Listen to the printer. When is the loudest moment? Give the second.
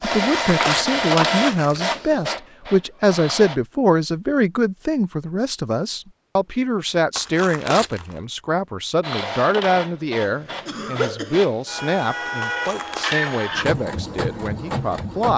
1 s.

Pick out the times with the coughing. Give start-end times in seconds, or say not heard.
10.2-11.4.